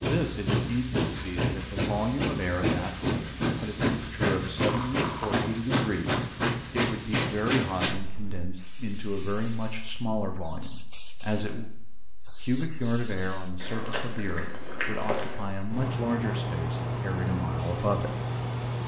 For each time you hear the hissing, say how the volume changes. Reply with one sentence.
You can hear the hissing from 0.0 to 18.8 s, getting quieter then louder.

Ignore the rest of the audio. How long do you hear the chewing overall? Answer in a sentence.
You can hear the chewing for 3 seconds altogether.